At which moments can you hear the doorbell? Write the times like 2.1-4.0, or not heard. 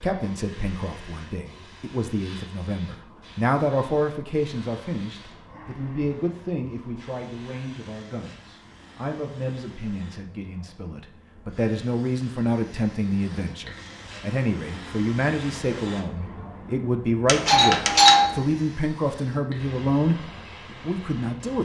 17.2-18.4.